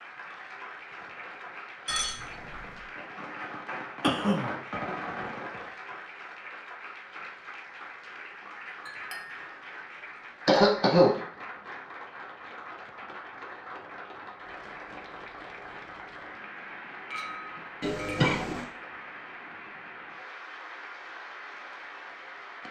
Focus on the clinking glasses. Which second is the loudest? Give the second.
2 s.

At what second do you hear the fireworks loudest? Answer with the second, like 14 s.
5 s.